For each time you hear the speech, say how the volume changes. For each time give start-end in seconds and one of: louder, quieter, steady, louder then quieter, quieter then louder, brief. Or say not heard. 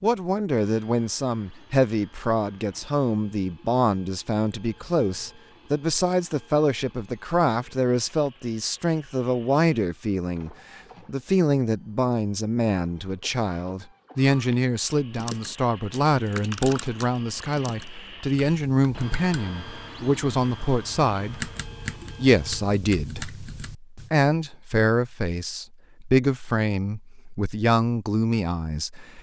0.0-29.1 steady.